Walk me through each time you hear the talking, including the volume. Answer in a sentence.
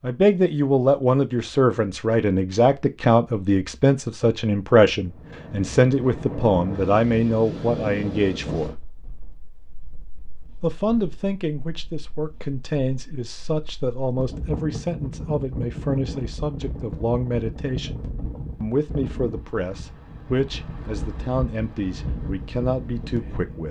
The talking can be heard from 0.0 to 8.8 s, at a steady volume; and from 10.6 to 23.6 s, at a steady volume.